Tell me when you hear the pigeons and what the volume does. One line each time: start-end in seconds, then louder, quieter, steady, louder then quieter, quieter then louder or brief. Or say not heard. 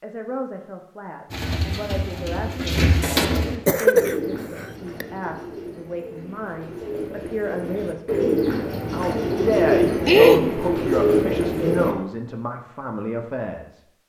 1.3-11.9 quieter then louder.